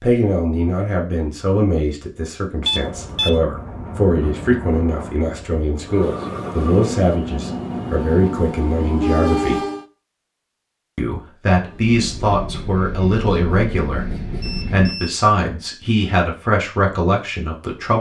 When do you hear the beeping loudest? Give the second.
3 s.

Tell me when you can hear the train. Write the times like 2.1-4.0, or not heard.
2.7-9.8, 11.7-15.1.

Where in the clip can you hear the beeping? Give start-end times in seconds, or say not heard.
2.6-3.4, 14.4-15.2.